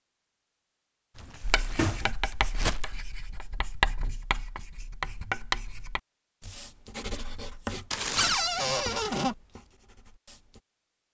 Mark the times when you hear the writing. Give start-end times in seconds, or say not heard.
1.4-10.6.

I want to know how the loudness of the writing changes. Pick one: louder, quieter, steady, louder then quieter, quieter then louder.
louder then quieter.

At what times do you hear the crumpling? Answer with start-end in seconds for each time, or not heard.
1.1-3.0, 7.9-8.4.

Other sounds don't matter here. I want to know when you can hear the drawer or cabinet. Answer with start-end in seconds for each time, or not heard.
1.3-2.1, 8.2-9.3.